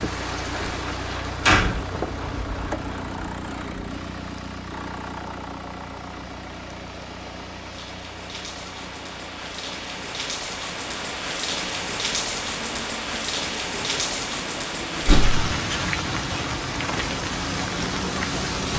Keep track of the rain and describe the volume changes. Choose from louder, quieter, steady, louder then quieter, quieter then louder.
quieter then louder.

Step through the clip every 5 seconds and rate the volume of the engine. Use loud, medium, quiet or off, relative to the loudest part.
loud, medium, medium, loud.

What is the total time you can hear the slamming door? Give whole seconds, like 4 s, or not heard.
2 s.